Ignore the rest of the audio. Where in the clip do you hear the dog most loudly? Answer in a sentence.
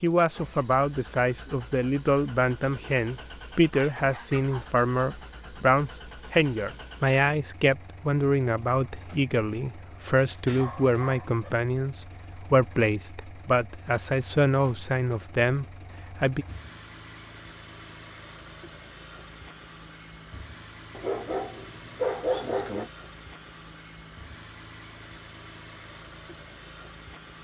The volume of the dog peaks at 22 seconds.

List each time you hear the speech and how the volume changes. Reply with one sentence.
The speech can be heard from 0.0 to 16.4 s, at a steady volume.